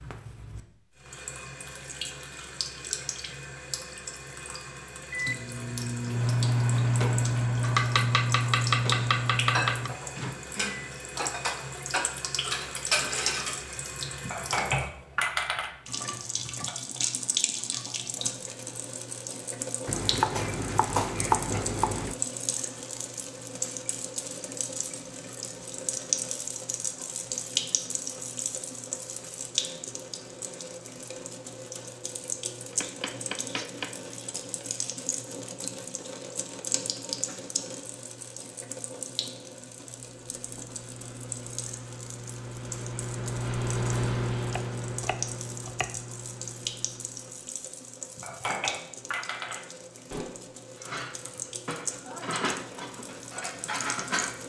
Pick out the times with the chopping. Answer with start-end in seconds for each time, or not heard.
7.6-9.9, 19.9-22.1, 32.6-34.3, 44.4-46.0.